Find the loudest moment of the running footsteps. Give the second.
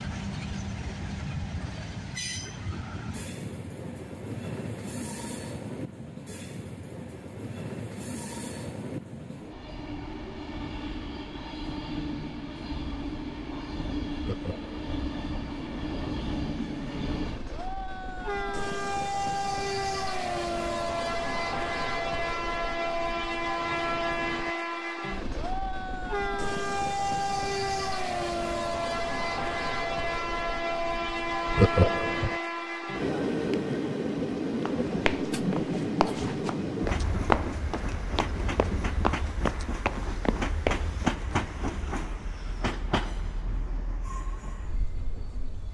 37 s.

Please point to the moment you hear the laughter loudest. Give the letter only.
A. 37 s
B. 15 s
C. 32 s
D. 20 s
C.